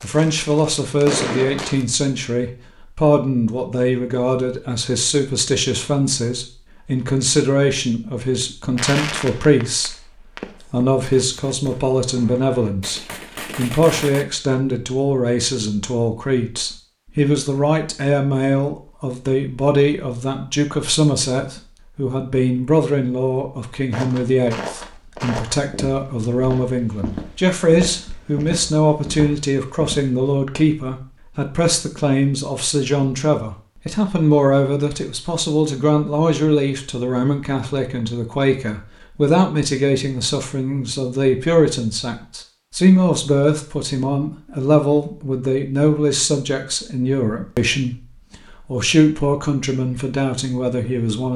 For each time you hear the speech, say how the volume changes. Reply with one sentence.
The speech can be heard from 0.0 to 9.9 s, at a steady volume; from 10.7 to 48.0 s, at a steady volume; and briefly from 48.6 to 51.3 s.